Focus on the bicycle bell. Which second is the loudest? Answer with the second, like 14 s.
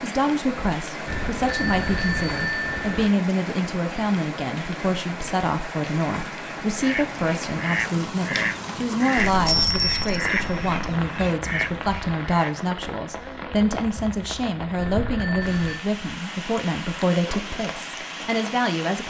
10 s.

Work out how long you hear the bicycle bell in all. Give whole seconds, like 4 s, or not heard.
5 s.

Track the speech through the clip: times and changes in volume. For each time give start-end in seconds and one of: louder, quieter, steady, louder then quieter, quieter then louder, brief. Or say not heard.
0.0-19.0 steady.